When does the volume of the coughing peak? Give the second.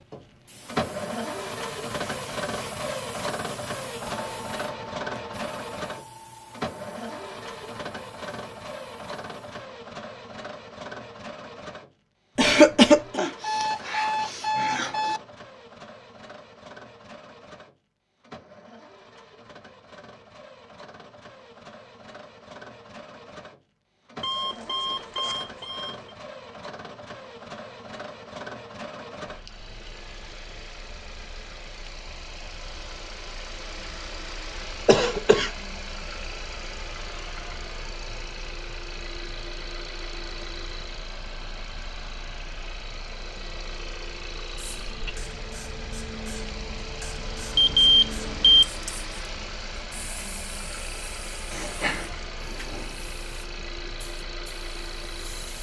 13 s.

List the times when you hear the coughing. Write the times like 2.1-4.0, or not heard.
12.3-13.2, 34.9-35.5, 51.5-52.1.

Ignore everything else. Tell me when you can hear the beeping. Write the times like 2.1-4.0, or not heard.
13.2-15.2, 24.2-26.1, 47.5-48.6.